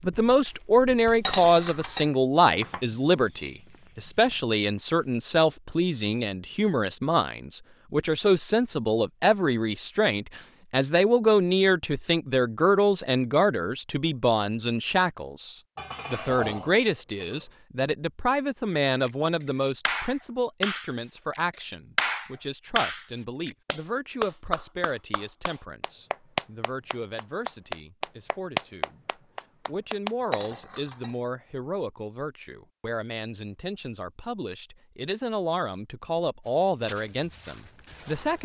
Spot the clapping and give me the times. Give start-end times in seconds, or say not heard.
19.1-30.4.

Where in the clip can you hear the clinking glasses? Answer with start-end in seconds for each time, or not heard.
1.2-2.8, 15.8-17.4, 30.3-31.1.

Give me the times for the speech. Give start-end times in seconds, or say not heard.
0.0-38.4.